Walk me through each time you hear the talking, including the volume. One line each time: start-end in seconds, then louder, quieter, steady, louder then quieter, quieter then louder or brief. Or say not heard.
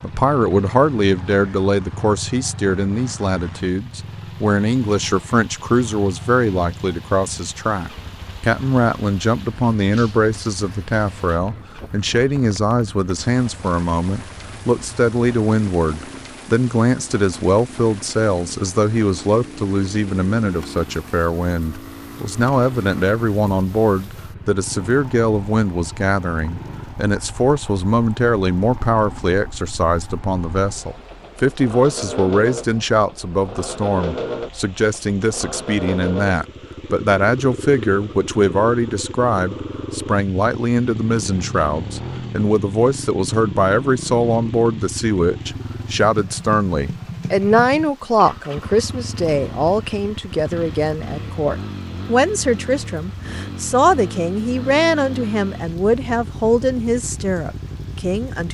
0.0-58.4 steady.